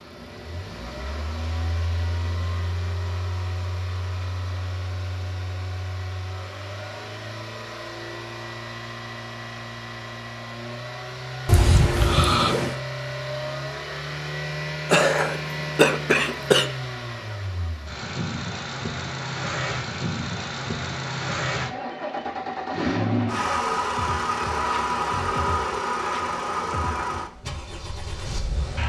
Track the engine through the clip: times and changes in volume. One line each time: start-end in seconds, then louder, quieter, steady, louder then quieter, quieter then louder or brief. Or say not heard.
0.0-28.8 louder.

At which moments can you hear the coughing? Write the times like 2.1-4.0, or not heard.
11.4-12.8, 14.9-16.6.